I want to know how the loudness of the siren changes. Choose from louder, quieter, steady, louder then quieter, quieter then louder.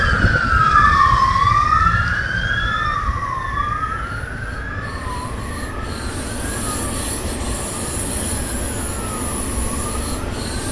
quieter.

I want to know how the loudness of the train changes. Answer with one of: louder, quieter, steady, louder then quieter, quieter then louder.
louder.